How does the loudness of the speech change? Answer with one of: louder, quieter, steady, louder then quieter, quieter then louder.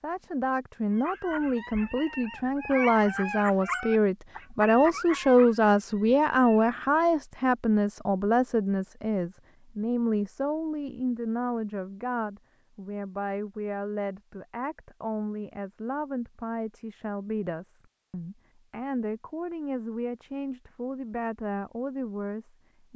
quieter.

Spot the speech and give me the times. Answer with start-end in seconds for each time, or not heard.
0.0-22.9.